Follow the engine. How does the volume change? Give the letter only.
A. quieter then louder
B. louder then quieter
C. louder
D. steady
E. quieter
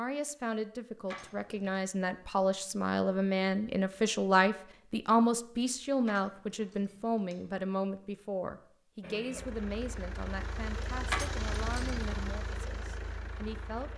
B.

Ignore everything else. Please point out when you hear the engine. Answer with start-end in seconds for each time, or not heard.
9.0-13.9.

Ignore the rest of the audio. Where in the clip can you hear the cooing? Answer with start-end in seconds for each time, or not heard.
not heard.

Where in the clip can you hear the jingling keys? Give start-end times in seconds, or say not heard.
1.1-1.8, 6.0-7.6, 11.1-12.2.